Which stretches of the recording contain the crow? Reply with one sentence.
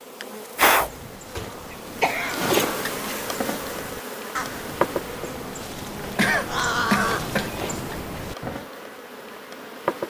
You can hear the crow from 0.7 to 8.7 s.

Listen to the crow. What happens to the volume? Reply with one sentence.
The loudness of the crow goes up.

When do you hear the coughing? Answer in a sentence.
You can hear the coughing from 0.7 to 2.5 s and from 6.2 to 7.5 s.